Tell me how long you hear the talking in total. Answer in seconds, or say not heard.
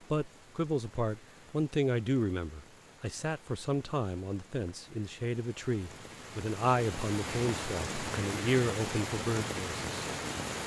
10 s.